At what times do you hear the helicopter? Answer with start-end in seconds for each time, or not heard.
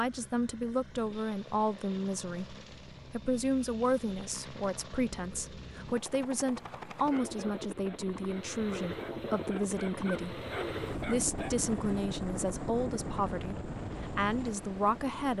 0.0-15.3.